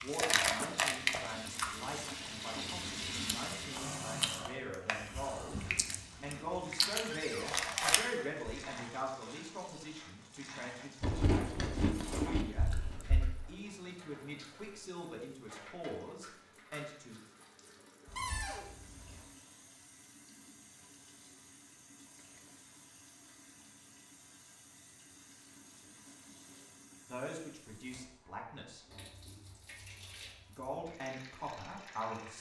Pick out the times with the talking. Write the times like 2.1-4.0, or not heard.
0.0-17.1, 27.1-28.9, 30.5-32.3.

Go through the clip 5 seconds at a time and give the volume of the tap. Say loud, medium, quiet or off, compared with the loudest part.
loud, medium, medium, quiet, quiet, quiet, medium.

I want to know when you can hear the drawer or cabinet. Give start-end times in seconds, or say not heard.
7.1-8.0, 18.1-18.6.